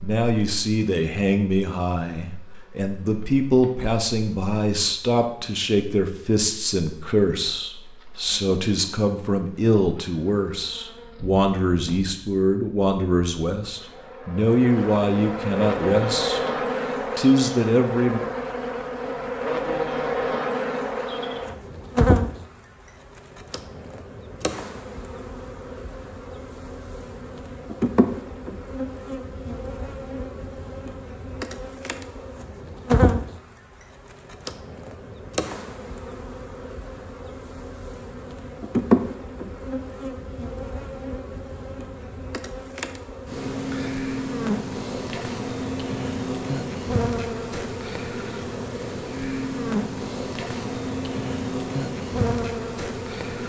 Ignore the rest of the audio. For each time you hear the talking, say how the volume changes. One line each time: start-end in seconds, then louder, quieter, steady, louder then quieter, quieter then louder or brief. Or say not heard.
0.0-16.5 steady
17.1-18.2 brief.